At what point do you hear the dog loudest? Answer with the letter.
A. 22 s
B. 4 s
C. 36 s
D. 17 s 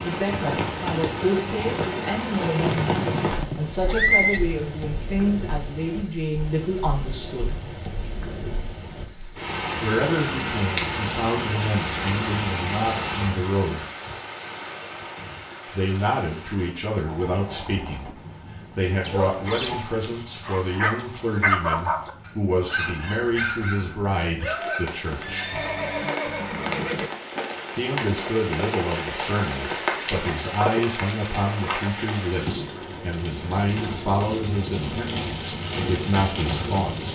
A.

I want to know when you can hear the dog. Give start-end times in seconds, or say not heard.
19.0-25.0.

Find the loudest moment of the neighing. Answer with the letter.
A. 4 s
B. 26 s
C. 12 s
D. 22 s
A.